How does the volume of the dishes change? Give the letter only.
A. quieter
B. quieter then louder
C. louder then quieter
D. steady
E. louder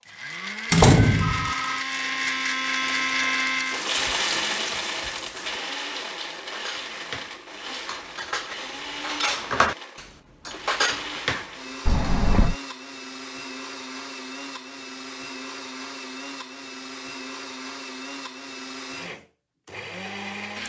E.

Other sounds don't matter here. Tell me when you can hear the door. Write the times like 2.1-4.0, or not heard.
0.7-1.5, 11.8-12.6.